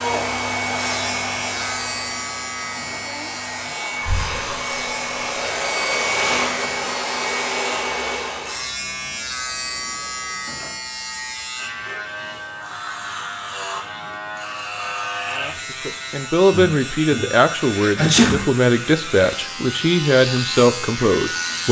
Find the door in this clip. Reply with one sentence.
You can't hear the door here.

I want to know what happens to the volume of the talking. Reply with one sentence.
The volume of the talking stays about the same.